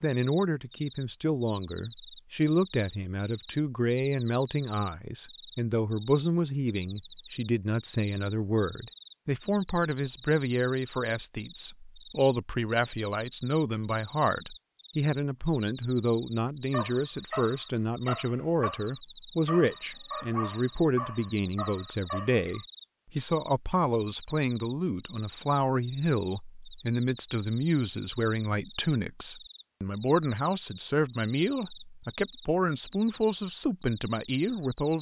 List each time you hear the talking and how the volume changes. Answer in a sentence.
The talking can be heard from 0.0 to 34.9 s, at a steady volume.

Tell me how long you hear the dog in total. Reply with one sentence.
You can hear the dog for 6 seconds altogether.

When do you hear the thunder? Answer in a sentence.
You can't hear the thunder here.